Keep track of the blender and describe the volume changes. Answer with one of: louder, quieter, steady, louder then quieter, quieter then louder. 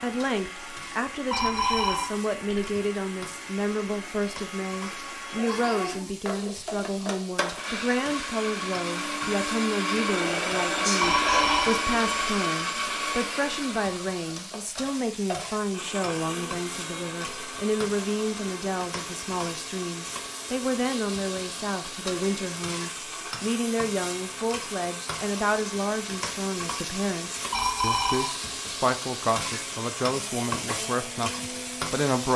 louder then quieter.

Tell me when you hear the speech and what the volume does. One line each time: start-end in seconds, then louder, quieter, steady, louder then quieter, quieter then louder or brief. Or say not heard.
0.0-32.3 steady.